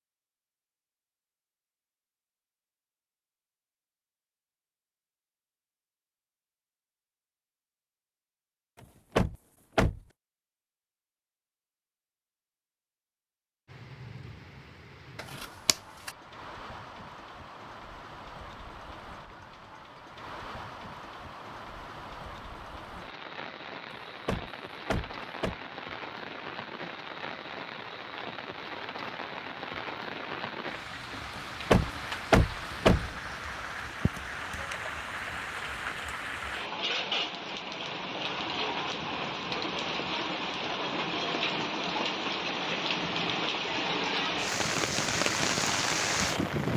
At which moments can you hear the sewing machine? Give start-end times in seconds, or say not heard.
44.4-46.7.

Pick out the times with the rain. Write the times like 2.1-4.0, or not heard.
13.7-46.7.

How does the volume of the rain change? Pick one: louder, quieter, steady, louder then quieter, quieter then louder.
louder.